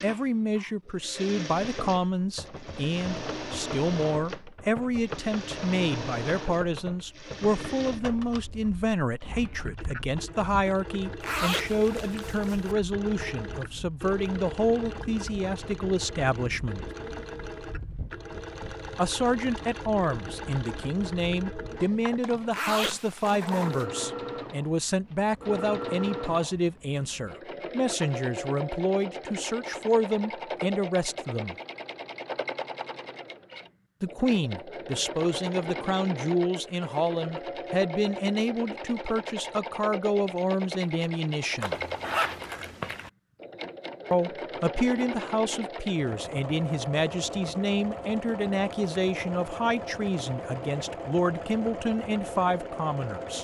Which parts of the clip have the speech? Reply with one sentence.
The speech can be heard from 0.0 to 16.9 s, from 18.9 to 31.6 s, from 34.0 to 41.8 s and from 44.1 to 53.3 s.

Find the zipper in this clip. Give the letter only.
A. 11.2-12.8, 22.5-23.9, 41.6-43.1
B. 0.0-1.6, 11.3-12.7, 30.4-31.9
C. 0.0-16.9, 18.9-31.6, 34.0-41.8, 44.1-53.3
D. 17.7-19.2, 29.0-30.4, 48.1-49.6
A.